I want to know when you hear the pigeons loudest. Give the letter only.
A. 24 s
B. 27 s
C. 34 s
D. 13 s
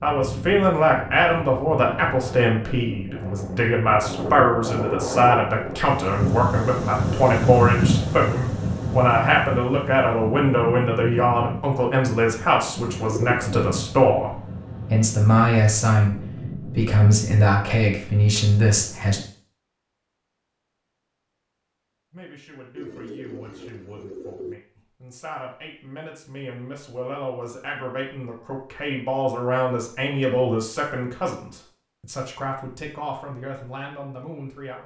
D.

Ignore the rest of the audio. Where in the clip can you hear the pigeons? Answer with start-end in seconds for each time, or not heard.
12.8-13.6, 22.8-24.6.